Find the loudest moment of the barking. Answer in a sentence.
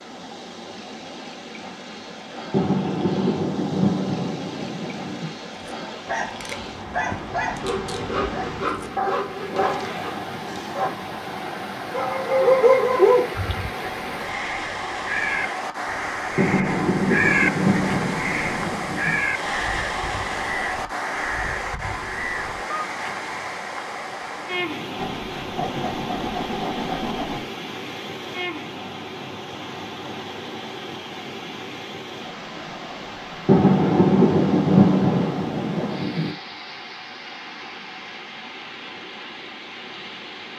The loudest moment of the barking is at 13 seconds.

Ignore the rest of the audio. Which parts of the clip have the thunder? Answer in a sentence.
The thunder can be heard from 2.5 to 5.3 s, from 16.4 to 19.2 s and from 33.5 to 36.4 s.